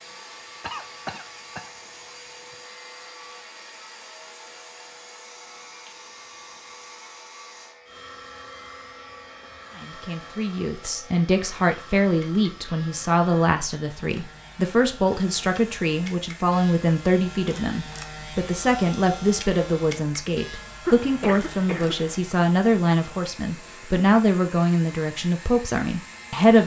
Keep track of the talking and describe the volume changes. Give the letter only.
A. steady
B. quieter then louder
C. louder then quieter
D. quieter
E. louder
A.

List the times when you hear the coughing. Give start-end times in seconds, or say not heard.
0.6-2.2, 20.9-22.2.